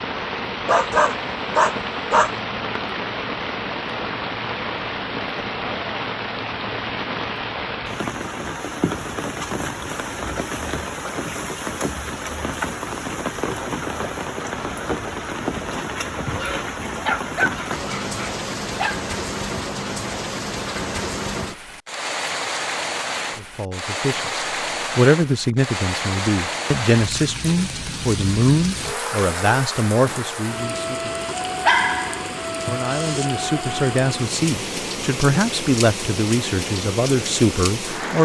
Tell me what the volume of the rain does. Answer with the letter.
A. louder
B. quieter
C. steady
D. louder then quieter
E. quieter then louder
C.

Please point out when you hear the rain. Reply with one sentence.
You can hear the rain from 0.0 to 38.1 s.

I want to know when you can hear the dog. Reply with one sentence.
The dog can be heard from 0.7 to 2.3 s, from 16.2 to 19.1 s and from 31.5 to 33.2 s.